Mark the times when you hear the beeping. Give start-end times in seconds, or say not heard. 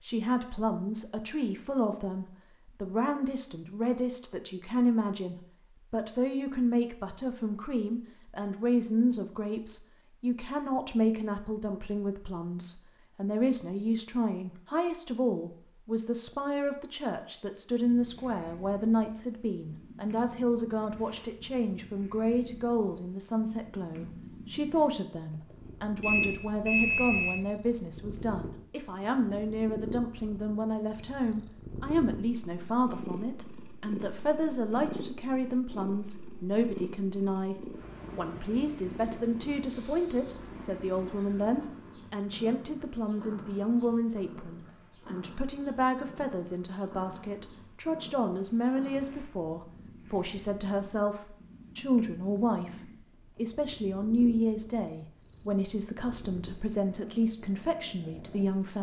26.0-27.4.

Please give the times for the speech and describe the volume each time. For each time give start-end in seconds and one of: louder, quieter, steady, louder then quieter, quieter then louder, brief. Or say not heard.
0.0-58.7 steady.